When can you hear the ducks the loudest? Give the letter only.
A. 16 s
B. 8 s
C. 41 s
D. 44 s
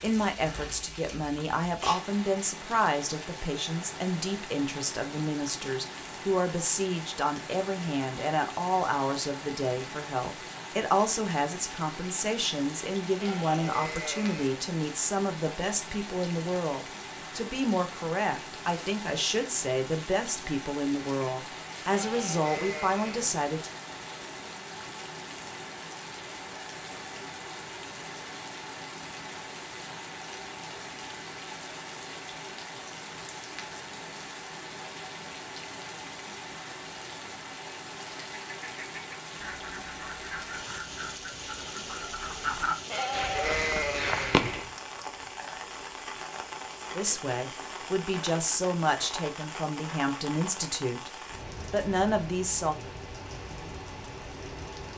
D.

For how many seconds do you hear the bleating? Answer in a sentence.
You can hear the bleating for 4 seconds altogether.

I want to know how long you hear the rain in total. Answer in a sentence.
You can hear the rain for 55 seconds altogether.